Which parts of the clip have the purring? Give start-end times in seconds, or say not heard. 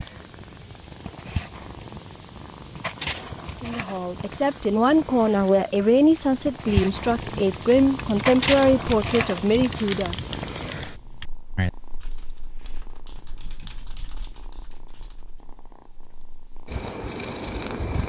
0.0-18.0.